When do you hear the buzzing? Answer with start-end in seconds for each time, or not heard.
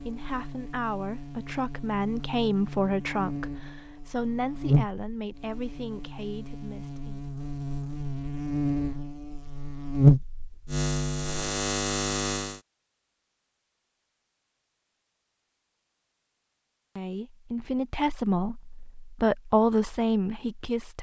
0.0-12.6.